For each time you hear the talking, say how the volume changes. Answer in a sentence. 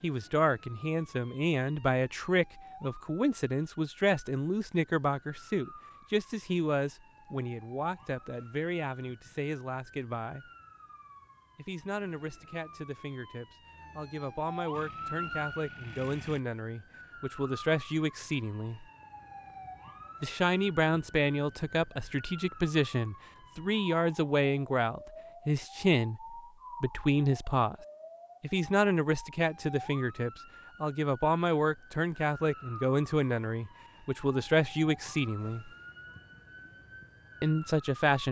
The talking can be heard from 0.0 to 10.5 s, getting quieter; from 11.6 to 18.9 s, getting louder; from 20.2 to 27.8 s, at a steady volume; from 28.4 to 35.7 s, at a steady volume; and briefly from 37.4 to 38.2 s.